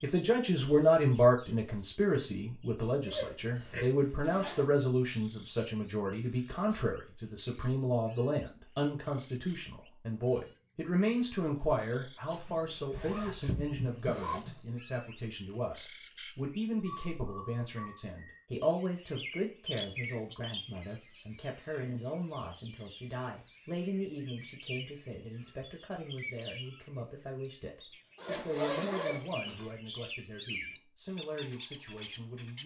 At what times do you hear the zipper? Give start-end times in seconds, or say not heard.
3.0-4.7, 12.3-14.6, 28.1-29.7.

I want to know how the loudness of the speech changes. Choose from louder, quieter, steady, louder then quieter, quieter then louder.
quieter.